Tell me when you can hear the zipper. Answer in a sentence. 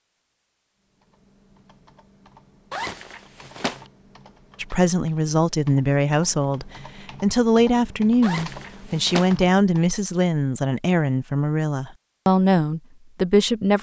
You can hear the zipper from 2.7 to 3.9 s and from 8.2 to 9.3 s.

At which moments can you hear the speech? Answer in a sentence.
You can hear the speech from 4.6 to 13.7 s.